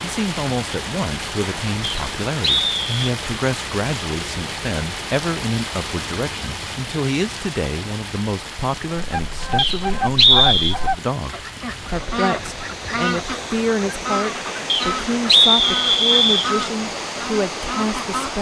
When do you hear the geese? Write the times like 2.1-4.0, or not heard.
8.9-18.3.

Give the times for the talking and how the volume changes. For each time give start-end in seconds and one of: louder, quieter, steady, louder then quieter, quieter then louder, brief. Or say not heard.
0.0-18.3 steady.